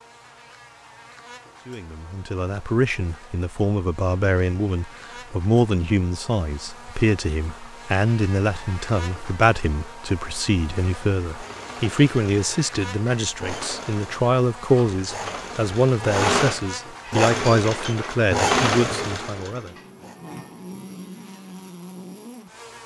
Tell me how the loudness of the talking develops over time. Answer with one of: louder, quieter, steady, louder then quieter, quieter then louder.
steady.